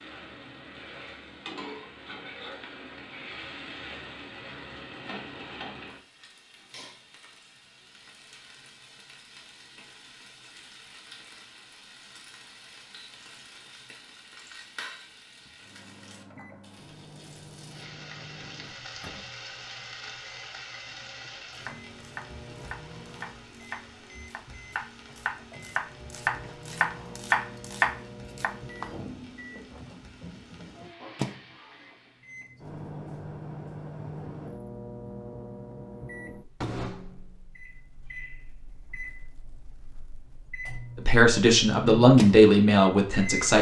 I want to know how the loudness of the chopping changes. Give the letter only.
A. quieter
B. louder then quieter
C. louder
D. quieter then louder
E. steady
C.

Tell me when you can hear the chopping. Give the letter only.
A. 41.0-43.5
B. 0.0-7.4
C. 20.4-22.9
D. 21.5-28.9
D.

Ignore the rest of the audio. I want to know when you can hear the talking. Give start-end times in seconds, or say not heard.
41.0-43.5.